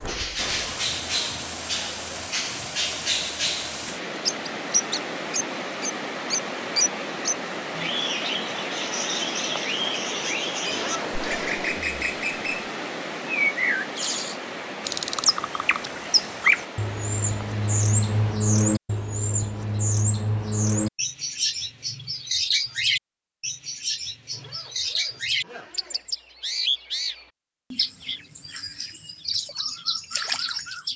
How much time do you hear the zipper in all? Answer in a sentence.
You can hear the zipper for 3 seconds altogether.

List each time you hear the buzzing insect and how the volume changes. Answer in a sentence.
You can't hear the buzzing insect here.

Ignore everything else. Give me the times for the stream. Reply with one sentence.
You can hear the stream from 0.0 to 18.4 s.